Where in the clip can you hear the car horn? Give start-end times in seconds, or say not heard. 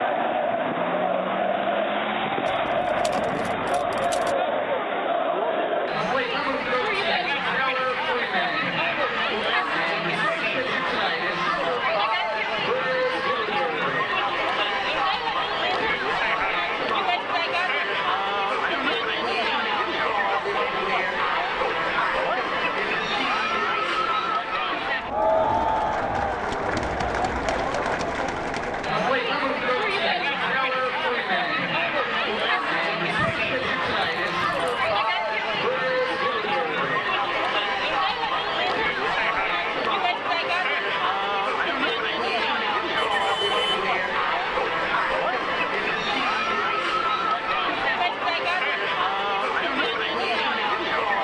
43.0-43.9.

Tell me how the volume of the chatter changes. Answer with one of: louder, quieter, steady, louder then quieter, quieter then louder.
steady.